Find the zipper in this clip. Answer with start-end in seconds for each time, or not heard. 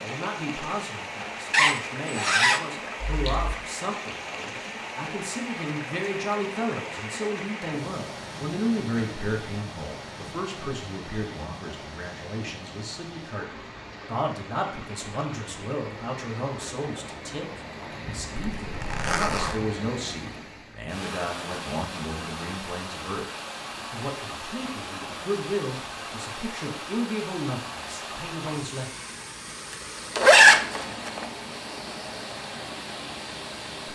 1.5-3.5, 18.6-19.6, 29.7-31.2.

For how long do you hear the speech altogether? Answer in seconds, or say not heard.
28 s.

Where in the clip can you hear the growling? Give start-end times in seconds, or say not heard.
not heard.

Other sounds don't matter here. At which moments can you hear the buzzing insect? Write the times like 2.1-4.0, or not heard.
not heard.